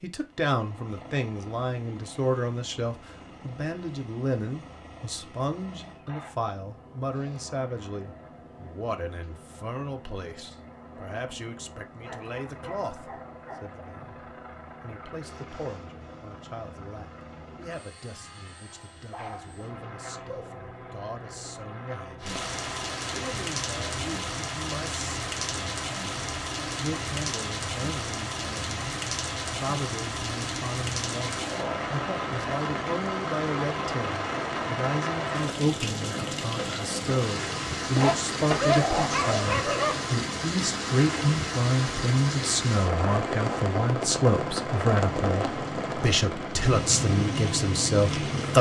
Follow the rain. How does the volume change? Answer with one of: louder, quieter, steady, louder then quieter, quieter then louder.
steady.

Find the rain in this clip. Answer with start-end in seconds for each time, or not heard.
22.2-48.5.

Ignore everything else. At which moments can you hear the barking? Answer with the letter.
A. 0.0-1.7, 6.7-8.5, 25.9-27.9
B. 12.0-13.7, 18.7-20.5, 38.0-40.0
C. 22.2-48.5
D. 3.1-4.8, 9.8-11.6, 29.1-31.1
B.